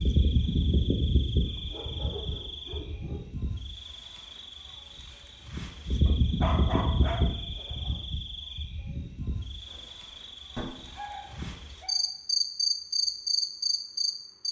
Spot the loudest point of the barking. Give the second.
7 s.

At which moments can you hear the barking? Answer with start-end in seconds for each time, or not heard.
1.3-3.2, 6.0-8.1, 10.8-12.0.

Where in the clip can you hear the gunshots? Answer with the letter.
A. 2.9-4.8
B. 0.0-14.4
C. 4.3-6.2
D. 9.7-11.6
D.